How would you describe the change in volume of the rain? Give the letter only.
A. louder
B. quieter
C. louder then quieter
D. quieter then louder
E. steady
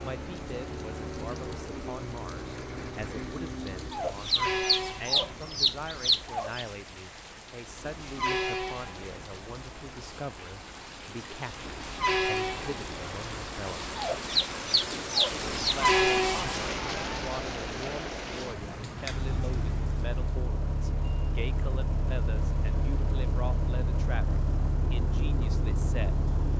A.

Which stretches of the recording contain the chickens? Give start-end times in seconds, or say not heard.
3.9-6.7, 13.9-15.8.